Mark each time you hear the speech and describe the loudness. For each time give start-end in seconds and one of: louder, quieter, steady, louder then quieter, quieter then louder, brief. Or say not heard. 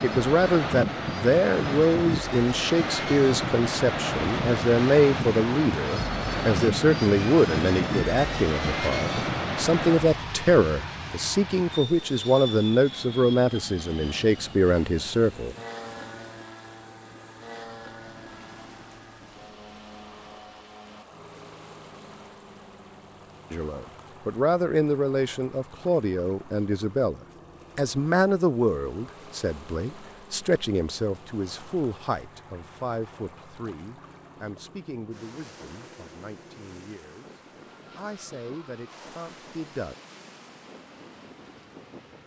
0.0-15.6 steady
23.5-40.0 quieter.